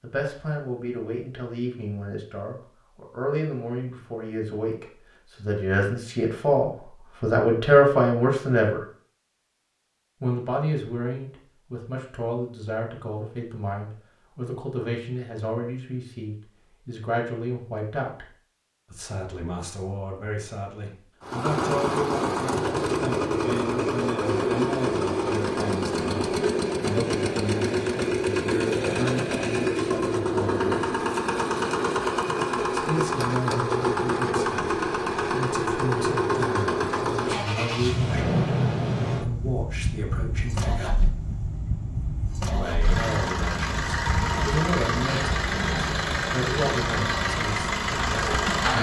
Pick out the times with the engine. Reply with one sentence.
The engine can be heard from 21.2 to 48.7 s.